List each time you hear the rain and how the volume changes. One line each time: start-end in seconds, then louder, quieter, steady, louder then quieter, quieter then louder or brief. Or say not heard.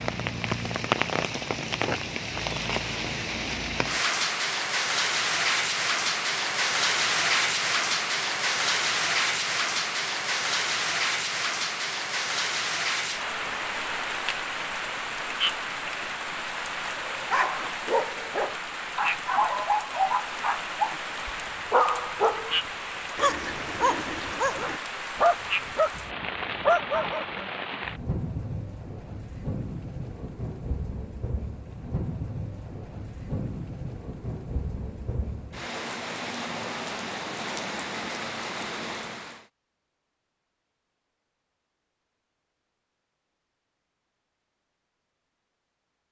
0.0-39.5 quieter.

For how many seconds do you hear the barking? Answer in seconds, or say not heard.
10 s.